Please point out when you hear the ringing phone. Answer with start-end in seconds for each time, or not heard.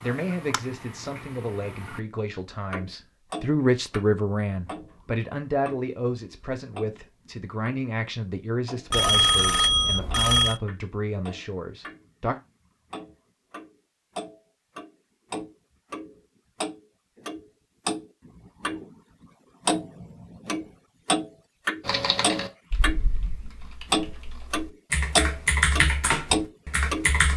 8.9-10.6.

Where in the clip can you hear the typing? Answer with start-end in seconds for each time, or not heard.
21.9-27.3.